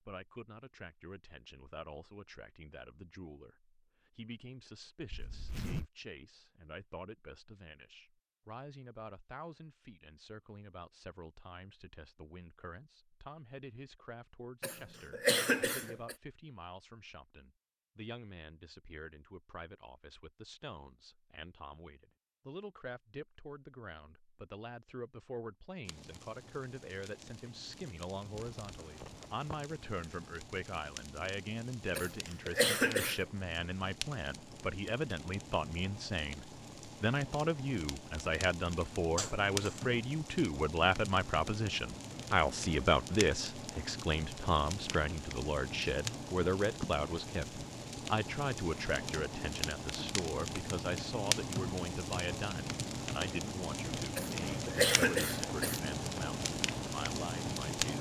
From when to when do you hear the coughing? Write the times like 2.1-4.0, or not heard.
14.6-16.1, 31.9-33.2, 54.1-55.8.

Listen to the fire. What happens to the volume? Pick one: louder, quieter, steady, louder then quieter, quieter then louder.
louder.